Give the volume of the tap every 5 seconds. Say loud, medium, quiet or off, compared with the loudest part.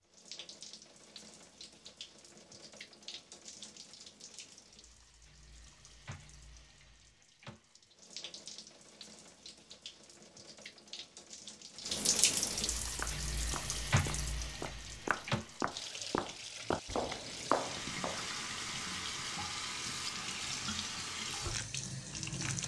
quiet, quiet, loud, loud, loud.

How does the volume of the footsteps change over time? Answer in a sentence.
The volume of the footsteps goes up.